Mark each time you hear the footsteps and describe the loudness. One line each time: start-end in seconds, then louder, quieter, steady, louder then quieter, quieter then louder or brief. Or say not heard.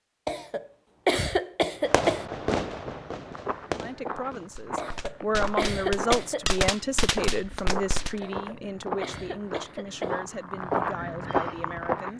2.9-12.1 louder.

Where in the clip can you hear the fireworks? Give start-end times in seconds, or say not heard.
1.9-8.2.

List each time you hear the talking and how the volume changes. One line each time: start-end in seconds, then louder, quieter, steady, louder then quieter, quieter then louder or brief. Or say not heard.
3.8-12.1 quieter.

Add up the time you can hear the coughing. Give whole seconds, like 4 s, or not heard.
6 s.